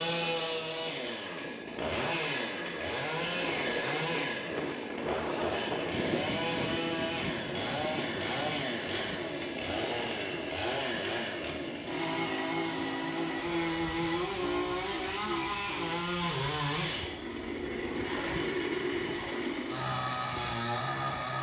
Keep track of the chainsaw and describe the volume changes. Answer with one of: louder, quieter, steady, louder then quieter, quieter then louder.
steady.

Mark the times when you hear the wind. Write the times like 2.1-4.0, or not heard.
0.0-21.3.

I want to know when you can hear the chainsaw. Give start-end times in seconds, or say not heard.
0.0-21.3.